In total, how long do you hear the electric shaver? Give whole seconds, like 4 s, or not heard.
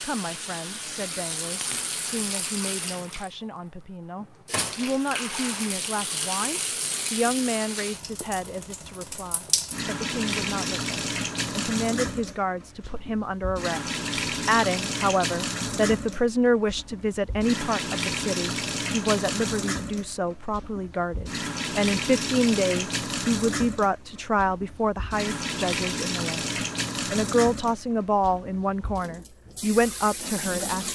not heard.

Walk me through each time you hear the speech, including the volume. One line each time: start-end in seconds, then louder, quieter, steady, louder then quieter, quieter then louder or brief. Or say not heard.
0.0-30.9 louder.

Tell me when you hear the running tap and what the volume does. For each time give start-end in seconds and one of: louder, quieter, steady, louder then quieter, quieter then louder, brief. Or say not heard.
0.0-30.9 steady.